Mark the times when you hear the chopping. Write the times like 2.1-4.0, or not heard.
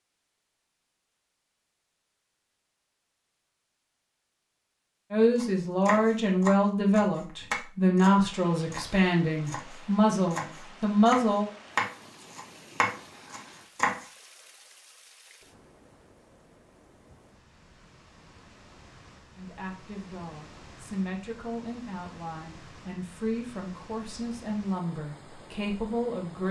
5.3-14.1.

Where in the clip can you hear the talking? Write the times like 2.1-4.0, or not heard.
5.1-11.4, 19.4-26.4.